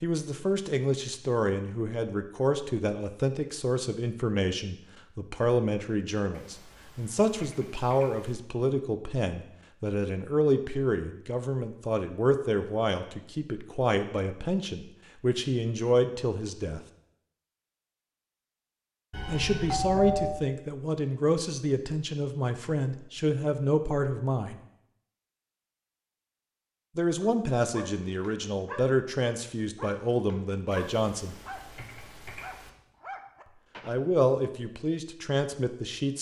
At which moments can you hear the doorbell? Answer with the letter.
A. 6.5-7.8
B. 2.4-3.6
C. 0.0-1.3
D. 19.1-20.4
D.